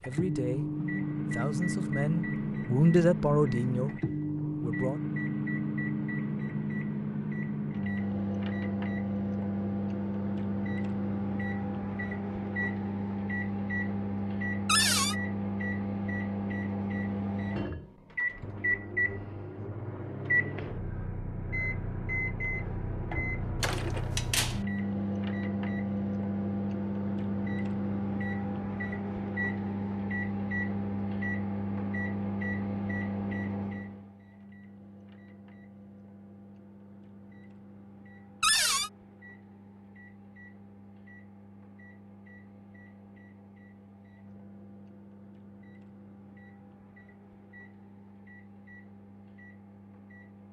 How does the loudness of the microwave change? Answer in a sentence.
The loudness of the microwave goes down.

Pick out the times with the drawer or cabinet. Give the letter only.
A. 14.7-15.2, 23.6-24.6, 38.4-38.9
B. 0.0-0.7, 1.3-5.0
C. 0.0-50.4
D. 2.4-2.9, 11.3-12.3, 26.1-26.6
A.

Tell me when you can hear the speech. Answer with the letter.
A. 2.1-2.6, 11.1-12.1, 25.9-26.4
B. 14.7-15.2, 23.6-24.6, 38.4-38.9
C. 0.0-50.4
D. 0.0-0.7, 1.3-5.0
D.